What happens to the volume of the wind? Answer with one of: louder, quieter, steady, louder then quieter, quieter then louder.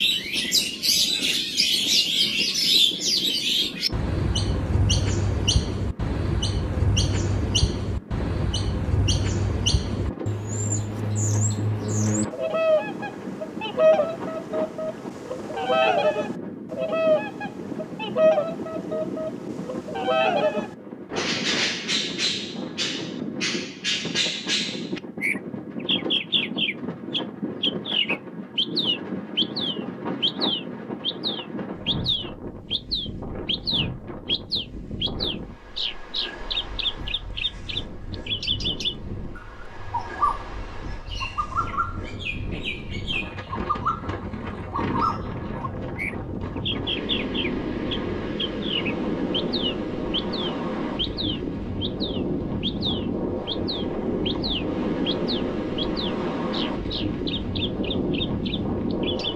louder.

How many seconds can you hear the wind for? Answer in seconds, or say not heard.
59 s.